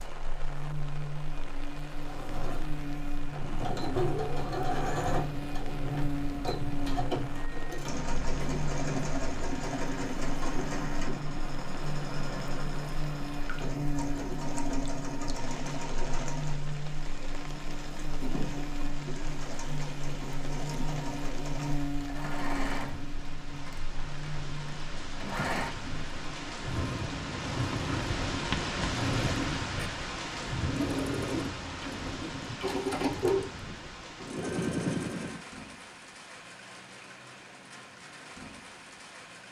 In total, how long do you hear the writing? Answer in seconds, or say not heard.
2 s.